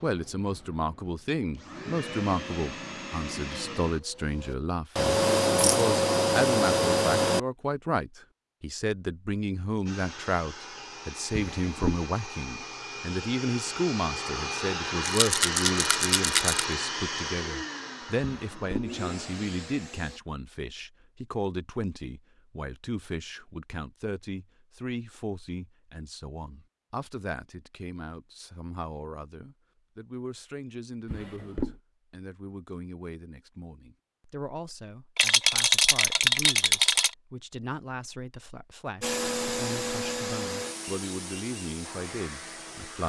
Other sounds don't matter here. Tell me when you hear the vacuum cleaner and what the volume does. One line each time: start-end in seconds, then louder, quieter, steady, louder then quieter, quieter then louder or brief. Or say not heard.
0.0-7.4 louder
9.8-20.2 louder then quieter
39.0-43.0 quieter.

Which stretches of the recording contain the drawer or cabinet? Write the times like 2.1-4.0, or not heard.
11.3-12.1, 18.3-18.9, 31.1-31.8.